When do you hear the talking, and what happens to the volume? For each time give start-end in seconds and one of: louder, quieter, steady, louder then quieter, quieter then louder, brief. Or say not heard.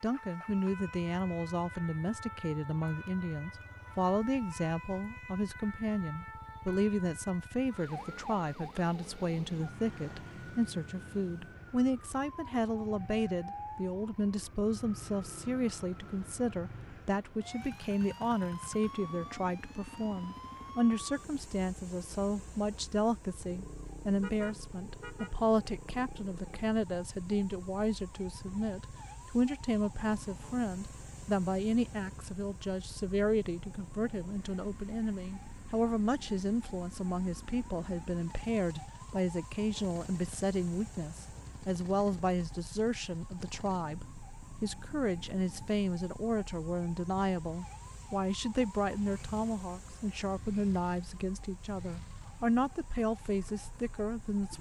0.0-54.5 steady.